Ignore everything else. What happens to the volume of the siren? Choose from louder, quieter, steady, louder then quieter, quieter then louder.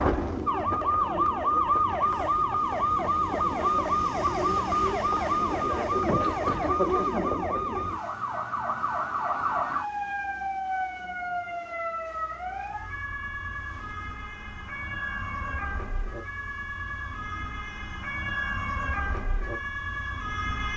quieter.